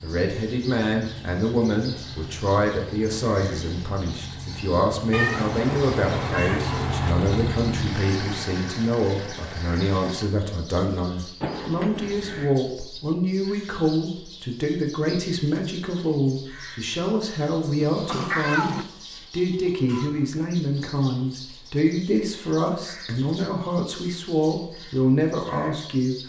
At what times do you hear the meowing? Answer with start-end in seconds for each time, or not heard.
5.1-7.2, 11.4-12.5, 17.8-18.9.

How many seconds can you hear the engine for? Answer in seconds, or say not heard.
10 s.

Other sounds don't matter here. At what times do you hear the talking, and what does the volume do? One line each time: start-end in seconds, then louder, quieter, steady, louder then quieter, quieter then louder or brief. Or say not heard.
0.0-26.2 steady.